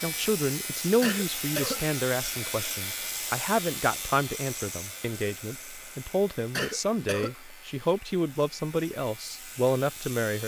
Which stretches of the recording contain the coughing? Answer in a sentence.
You can hear the coughing from 1.0 to 1.8 s and from 6.5 to 7.3 s.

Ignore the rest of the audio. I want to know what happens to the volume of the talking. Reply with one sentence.
The loudness of the talking goes down, then up.